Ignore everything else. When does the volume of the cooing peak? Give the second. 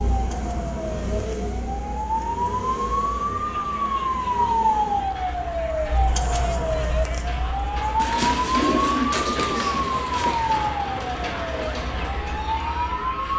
9 s.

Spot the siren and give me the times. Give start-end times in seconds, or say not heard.
0.0-13.2.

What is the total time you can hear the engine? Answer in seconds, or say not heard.
13 s.